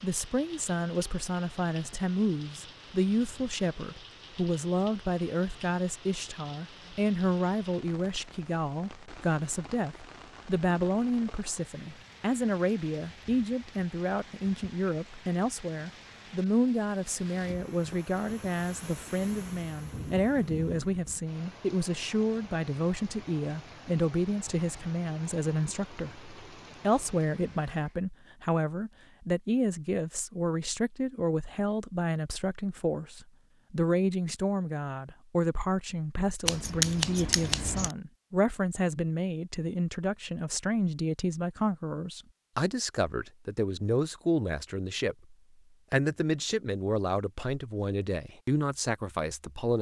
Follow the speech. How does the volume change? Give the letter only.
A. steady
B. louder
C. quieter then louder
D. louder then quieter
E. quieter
A.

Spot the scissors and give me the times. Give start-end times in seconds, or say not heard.
36.5-38.0.